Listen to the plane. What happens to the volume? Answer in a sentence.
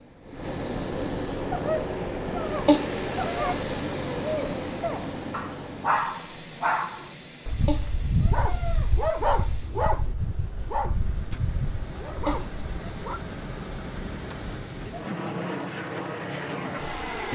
The loudness of the plane goes down, then up.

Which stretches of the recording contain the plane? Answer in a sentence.
The plane can be heard from 0.0 to 17.3 s.